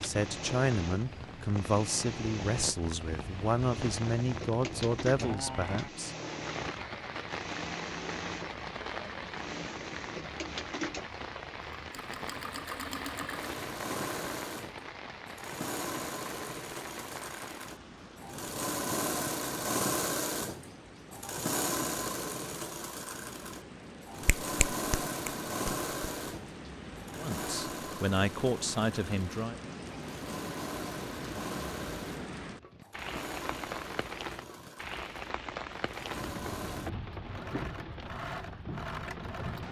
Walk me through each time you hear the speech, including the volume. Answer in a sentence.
You can hear the speech from 0.0 to 6.2 s, at a steady volume; and briefly from 27.1 to 29.6 s.